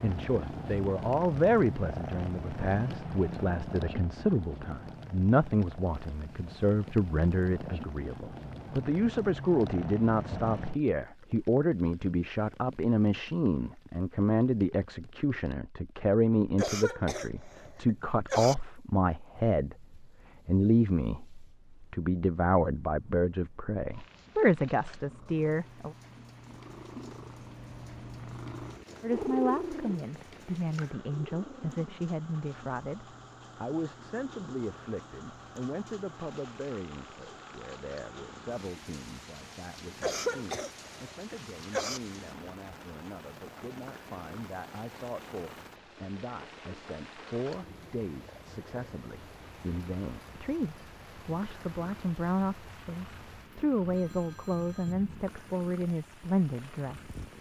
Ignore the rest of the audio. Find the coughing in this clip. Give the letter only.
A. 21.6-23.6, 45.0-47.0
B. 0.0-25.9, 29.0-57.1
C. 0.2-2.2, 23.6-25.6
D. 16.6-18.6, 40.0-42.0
D.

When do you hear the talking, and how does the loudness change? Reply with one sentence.
The talking can be heard from 0.0 to 25.9 s, at a steady volume; and from 29.0 to 57.1 s, getting quieter then louder.